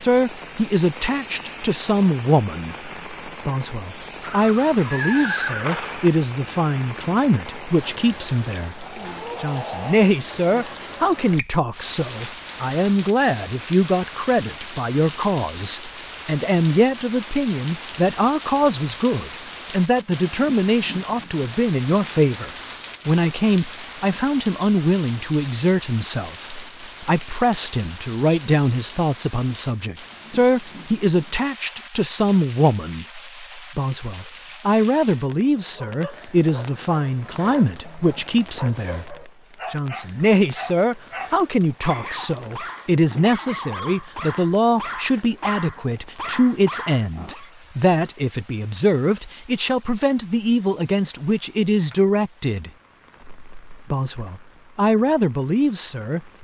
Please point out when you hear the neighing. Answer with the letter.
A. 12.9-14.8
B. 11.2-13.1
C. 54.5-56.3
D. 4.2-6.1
D.